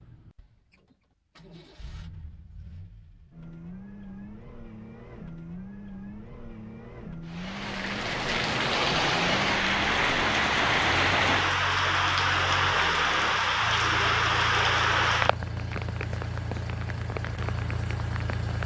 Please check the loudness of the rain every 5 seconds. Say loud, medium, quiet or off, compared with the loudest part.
off, loud, loud, medium.